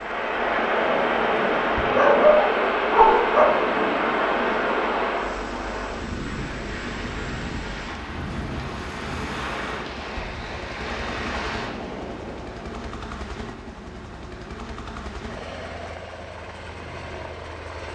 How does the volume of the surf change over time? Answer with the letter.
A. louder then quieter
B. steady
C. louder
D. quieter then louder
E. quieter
E.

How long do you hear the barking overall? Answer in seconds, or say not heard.
2 s.